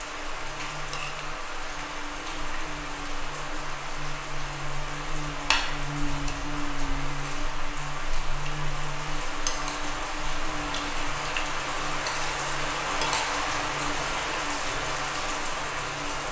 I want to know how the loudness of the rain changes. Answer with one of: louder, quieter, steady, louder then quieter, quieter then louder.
louder.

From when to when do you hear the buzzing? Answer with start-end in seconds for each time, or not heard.
0.0-16.2.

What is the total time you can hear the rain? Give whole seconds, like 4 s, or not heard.
16 s.